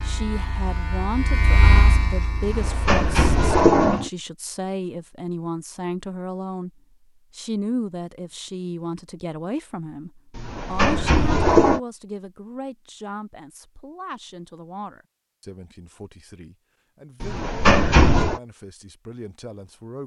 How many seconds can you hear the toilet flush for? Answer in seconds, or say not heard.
4 s.